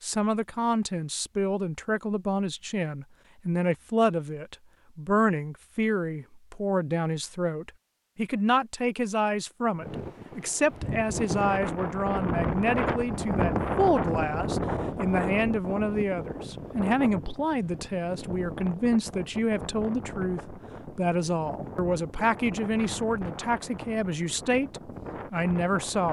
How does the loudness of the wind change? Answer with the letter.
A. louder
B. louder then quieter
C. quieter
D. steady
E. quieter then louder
C.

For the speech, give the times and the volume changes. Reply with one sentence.
The speech can be heard from 0.0 to 26.0 s, at a steady volume.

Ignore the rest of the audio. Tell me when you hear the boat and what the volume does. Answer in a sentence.
The boat can't be heard in this clip.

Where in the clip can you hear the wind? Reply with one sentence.
The wind can be heard from 9.7 to 26.0 s.